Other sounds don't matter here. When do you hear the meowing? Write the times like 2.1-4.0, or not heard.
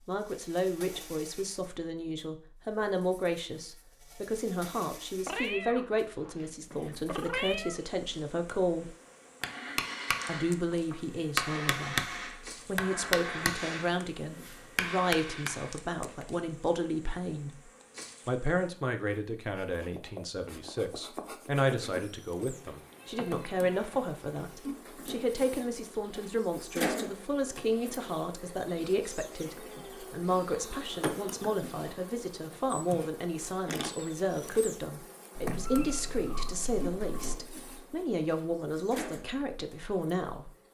5.2-7.8, 22.5-24.4, 35.5-37.4.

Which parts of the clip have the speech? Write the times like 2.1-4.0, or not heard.
0.1-8.9, 10.2-11.9, 12.7-17.5, 18.2-40.5.